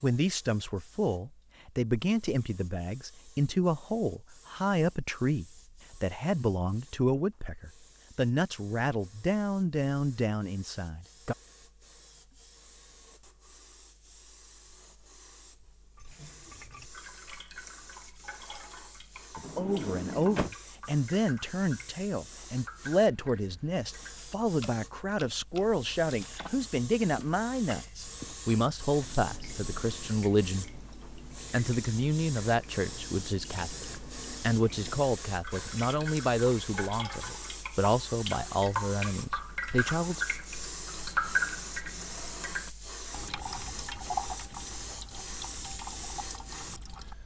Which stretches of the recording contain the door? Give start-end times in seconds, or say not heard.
19.4-20.5.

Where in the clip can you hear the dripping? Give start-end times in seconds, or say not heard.
15.9-47.1.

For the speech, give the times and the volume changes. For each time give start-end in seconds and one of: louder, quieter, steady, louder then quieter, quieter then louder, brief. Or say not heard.
0.0-11.3 steady
19.4-30.8 steady
31.5-40.2 steady.